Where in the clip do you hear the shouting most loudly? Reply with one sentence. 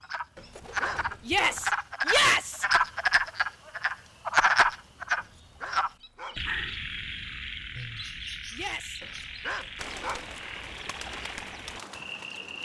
The loudest moment of the shouting is at 2 seconds.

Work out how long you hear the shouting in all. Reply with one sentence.
You can hear the shouting for 2 seconds altogether.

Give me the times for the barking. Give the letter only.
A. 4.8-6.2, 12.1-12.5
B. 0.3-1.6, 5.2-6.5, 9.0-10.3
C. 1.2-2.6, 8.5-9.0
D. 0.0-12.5
B.